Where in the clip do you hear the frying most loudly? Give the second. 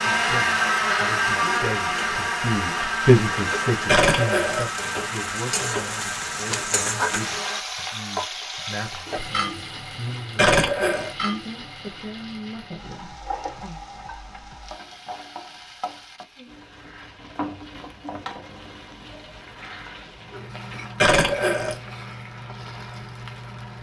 7 s.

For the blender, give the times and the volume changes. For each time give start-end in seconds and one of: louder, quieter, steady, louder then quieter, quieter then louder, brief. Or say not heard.
0.0-7.7 quieter.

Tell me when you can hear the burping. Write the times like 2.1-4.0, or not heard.
3.9-4.7, 10.3-11.1, 20.9-21.8.